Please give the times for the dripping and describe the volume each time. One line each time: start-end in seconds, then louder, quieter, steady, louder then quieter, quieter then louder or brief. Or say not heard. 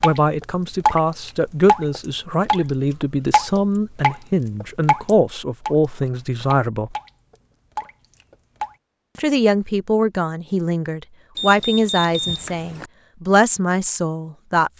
0.0-2.6 brief
3.3-8.8 quieter.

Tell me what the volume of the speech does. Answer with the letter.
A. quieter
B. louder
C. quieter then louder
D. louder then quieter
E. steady
E.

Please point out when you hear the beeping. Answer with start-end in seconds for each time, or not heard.
11.3-12.9.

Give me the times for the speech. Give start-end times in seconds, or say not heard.
0.0-7.0, 9.2-14.7.